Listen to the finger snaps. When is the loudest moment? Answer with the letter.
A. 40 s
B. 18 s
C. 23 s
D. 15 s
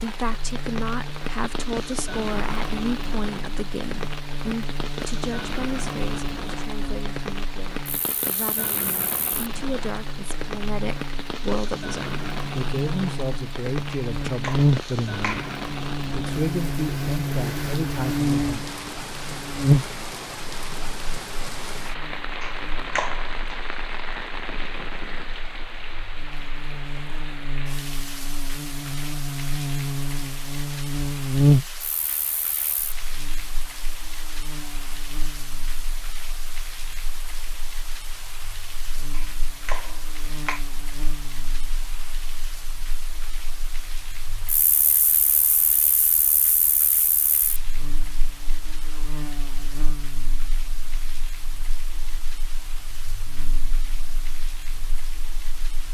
C.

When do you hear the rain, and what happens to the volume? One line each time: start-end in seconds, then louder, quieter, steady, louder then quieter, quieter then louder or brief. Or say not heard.
0.0-55.8 quieter.